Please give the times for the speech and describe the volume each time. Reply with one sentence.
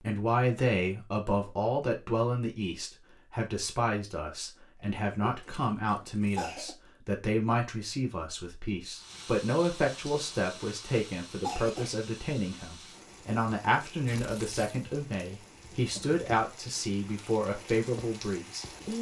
The speech can be heard from 0.0 to 18.9 s, at a steady volume.